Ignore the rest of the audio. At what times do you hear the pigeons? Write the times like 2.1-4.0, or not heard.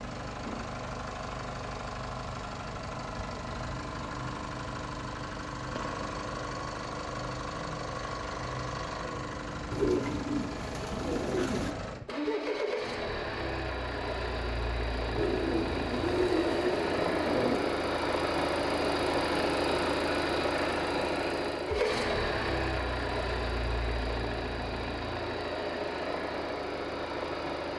9.7-11.8, 15.2-17.8.